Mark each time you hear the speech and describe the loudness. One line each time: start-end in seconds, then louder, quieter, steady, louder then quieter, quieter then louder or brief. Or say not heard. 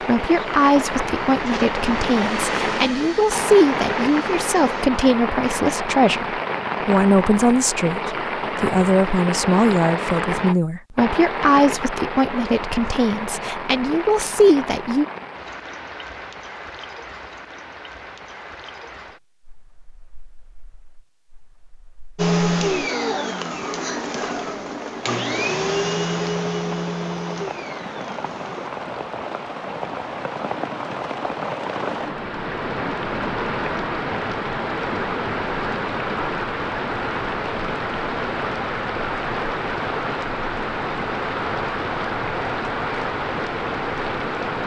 0.1-15.1 steady.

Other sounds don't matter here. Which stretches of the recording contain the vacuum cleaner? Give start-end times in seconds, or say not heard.
0.0-4.9, 22.1-28.7.